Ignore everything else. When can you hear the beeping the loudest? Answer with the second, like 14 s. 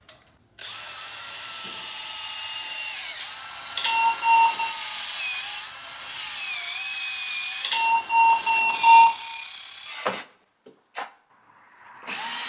9 s.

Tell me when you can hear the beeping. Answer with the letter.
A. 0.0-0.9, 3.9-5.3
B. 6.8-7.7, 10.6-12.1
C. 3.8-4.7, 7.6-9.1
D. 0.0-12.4
C.